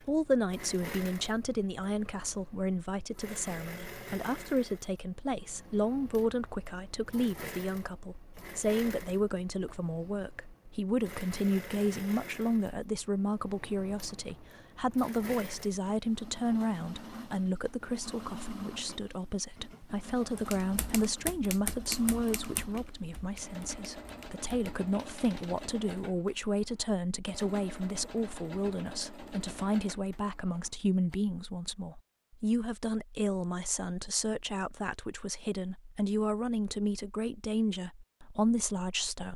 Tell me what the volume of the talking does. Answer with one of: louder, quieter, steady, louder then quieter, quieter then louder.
steady.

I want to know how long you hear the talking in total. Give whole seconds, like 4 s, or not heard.
39 s.